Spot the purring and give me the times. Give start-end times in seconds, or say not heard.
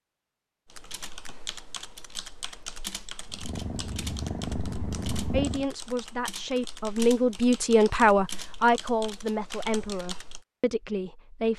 3.2-5.7.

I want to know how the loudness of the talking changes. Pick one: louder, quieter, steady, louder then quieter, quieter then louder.
louder then quieter.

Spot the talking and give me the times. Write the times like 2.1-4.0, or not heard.
5.3-11.5.